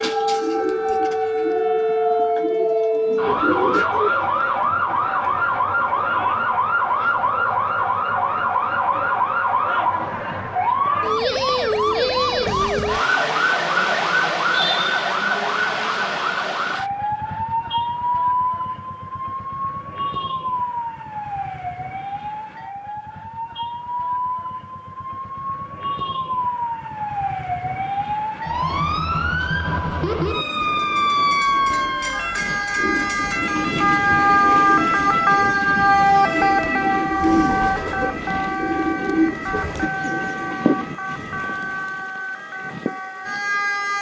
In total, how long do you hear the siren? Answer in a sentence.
The siren can be heard for 44 seconds in total.